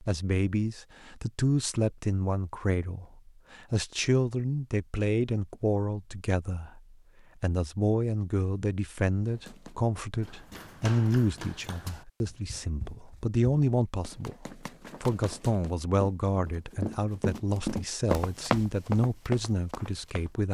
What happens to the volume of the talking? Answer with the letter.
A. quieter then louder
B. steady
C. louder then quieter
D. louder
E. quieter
B.